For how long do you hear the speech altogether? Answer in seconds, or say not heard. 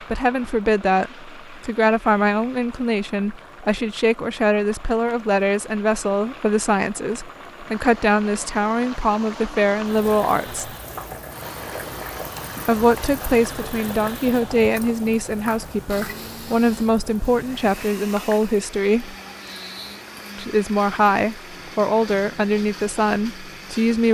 21 s.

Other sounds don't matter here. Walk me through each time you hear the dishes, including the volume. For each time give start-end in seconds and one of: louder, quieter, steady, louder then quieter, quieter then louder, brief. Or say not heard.
not heard.